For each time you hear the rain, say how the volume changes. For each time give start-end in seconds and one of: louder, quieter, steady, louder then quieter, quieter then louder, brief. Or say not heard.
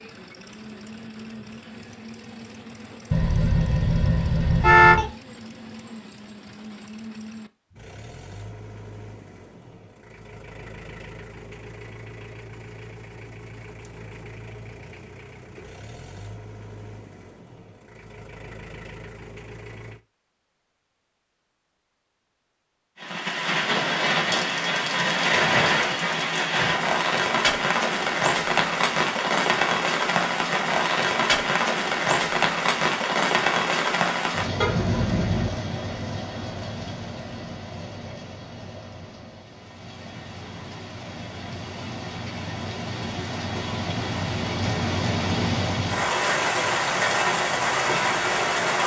23.0-48.8 quieter then louder.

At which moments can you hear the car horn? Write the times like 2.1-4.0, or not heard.
3.1-5.0, 34.6-35.5.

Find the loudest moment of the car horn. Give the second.
5 s.